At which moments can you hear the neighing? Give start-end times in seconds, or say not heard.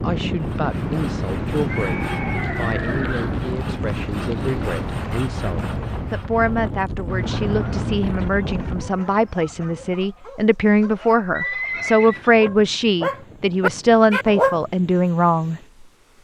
1.6-3.5, 7.0-8.1, 11.3-12.5.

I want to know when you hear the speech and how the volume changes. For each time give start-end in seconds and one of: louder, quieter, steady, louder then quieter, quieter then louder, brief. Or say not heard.
0.0-15.6 louder.